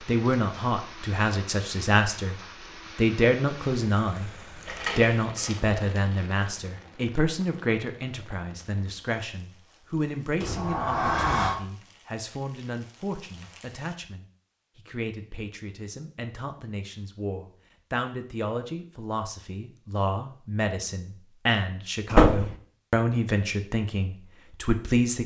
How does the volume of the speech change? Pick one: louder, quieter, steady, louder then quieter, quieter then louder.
quieter then louder.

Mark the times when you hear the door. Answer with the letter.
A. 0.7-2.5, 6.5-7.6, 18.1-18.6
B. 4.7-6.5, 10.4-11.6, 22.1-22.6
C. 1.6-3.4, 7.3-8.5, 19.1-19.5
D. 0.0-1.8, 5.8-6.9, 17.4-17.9
B.